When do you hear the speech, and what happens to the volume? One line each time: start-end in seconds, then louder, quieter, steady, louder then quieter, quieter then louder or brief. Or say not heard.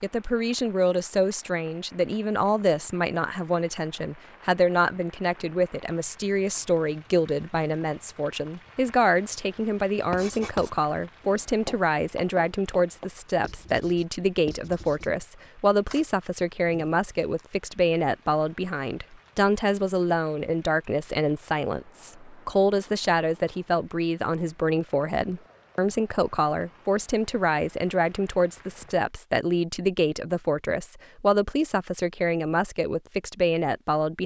0.0-34.2 steady.